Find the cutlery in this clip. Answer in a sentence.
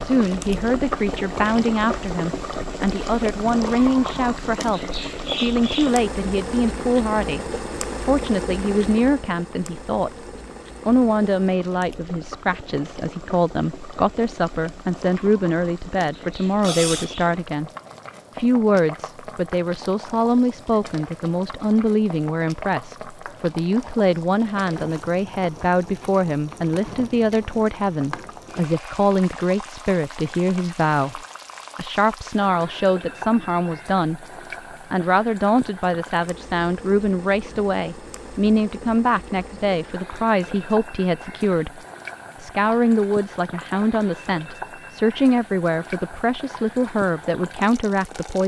You can hear the cutlery from 16.6 to 17.1 s.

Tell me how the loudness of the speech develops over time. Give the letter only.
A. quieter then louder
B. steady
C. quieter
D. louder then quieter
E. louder
B.